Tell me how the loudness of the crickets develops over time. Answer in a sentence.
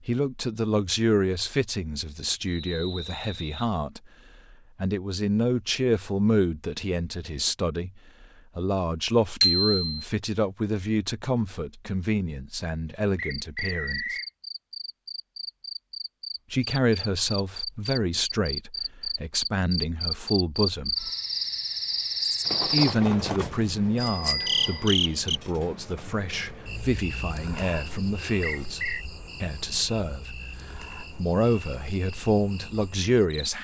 The loudness of the crickets goes up, then down.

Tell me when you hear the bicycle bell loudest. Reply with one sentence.
The loudest moment of the bicycle bell is at 10 seconds.